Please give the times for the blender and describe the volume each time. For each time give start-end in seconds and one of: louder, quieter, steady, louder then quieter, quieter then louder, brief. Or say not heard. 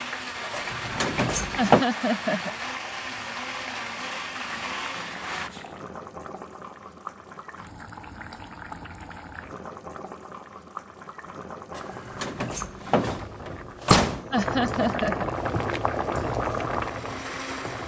0.0-5.5 steady
15.3-17.8 brief.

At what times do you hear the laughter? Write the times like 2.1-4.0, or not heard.
1.6-2.5, 14.3-15.2.